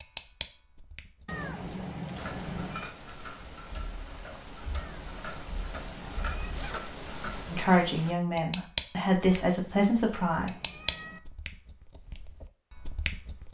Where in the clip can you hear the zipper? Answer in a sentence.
The zipper can be heard from 6.5 to 6.9 s.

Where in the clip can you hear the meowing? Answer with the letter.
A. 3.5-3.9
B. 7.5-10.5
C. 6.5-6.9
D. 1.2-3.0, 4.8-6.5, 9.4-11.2
D.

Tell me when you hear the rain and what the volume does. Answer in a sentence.
The rain can't be heard in this clip.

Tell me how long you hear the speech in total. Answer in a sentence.
The speech can be heard for 3 seconds in total.